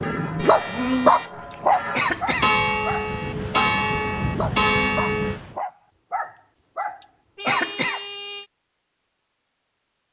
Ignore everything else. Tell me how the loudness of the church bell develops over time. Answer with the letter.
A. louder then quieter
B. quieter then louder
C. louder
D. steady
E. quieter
C.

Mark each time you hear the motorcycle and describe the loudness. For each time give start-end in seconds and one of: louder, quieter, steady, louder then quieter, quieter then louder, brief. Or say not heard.
not heard.